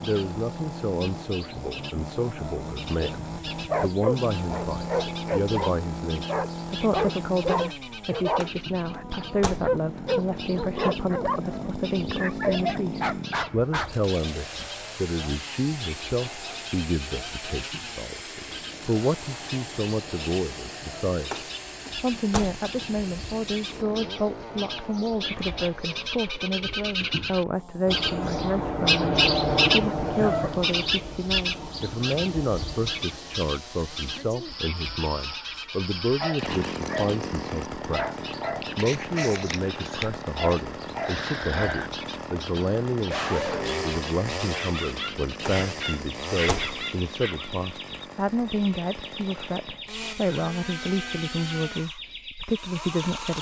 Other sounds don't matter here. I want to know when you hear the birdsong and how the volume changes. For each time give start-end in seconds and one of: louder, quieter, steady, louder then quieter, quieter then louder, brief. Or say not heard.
0.0-53.1 louder then quieter.